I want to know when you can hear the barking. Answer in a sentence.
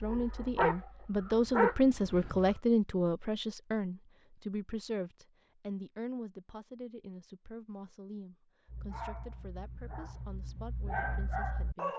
You can hear the barking from 0.0 to 2.6 s and from 8.7 to 11.9 s.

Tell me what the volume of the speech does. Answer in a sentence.
The volume of the speech goes down.